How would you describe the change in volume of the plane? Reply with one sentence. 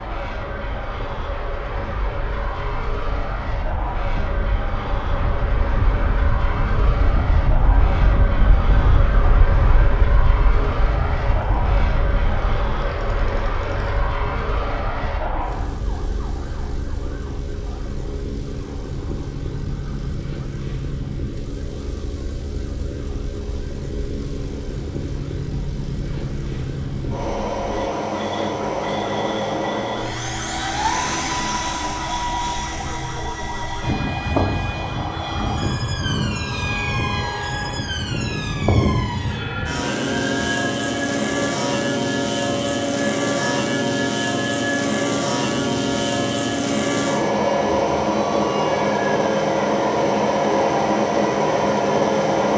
The loudness of the plane goes up.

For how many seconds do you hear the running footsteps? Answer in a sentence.
The running footsteps can't be heard in this clip.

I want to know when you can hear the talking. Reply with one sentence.
You can't hear the talking here.